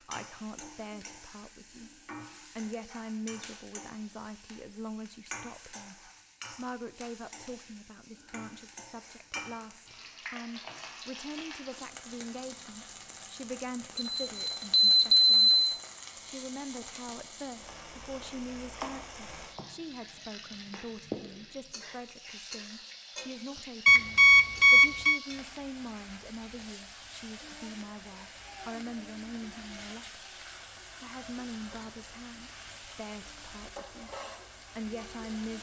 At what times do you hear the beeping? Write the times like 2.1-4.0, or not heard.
13.9-15.8, 23.9-25.2.